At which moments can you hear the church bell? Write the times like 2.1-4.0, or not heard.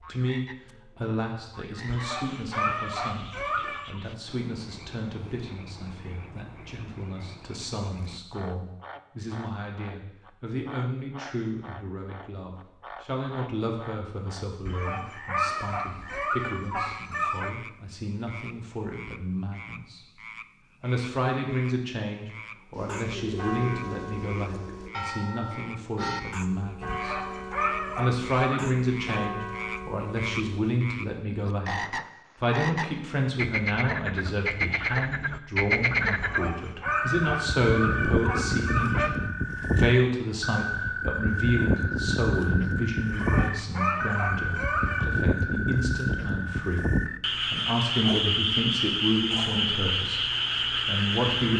22.8-30.6.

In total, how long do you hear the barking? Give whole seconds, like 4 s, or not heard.
12 s.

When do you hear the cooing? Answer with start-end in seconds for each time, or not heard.
22.7-24.9.